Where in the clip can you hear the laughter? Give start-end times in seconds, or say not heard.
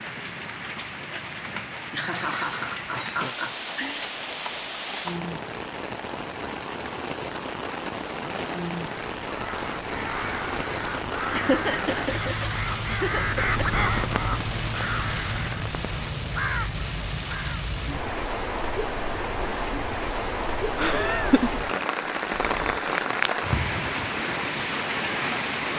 1.4-4.1, 11.3-13.8, 20.8-21.6.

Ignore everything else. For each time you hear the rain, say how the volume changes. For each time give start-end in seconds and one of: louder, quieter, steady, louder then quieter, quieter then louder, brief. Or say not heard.
0.0-25.7 louder.